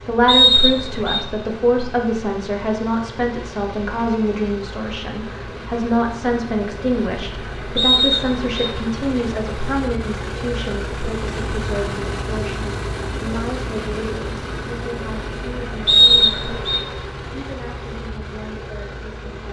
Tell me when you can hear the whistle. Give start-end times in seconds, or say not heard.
0.2-1.2, 7.8-8.7, 15.8-16.8.